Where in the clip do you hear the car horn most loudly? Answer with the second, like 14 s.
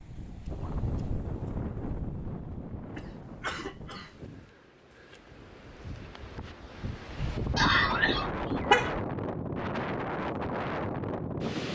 9 s.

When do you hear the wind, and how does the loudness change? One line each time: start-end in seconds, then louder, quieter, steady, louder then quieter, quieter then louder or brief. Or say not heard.
0.0-11.7 quieter then louder.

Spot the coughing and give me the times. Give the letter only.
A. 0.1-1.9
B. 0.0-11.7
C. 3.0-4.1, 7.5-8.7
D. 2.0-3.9
C.